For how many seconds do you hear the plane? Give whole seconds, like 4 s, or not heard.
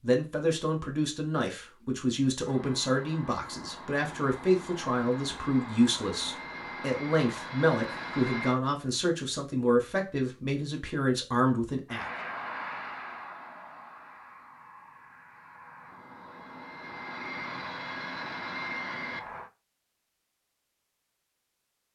14 s.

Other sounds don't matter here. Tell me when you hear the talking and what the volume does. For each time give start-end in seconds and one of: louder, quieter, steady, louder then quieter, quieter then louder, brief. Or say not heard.
0.0-12.1 steady.